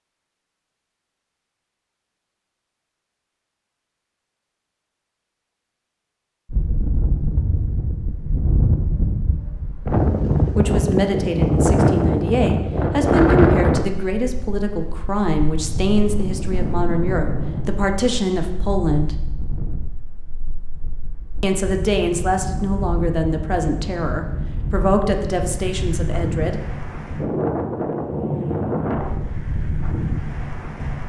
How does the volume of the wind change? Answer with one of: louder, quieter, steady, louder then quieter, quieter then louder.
quieter then louder.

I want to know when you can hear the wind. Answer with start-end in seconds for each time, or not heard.
6.5-31.0.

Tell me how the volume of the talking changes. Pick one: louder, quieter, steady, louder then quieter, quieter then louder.
steady.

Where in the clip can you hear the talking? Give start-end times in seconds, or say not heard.
10.5-19.2, 21.4-26.6.